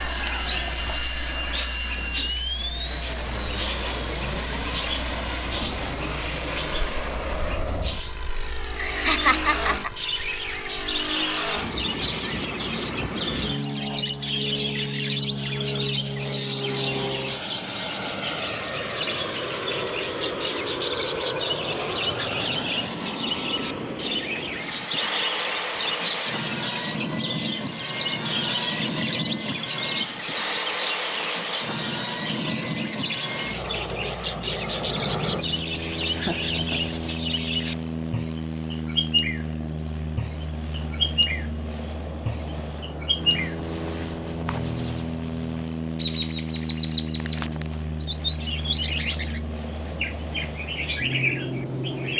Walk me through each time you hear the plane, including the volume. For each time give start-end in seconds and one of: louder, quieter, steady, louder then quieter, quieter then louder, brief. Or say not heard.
0.0-52.1 steady.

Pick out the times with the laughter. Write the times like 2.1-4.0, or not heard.
8.8-9.9, 36.1-37.0.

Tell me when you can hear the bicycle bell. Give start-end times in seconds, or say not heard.
not heard.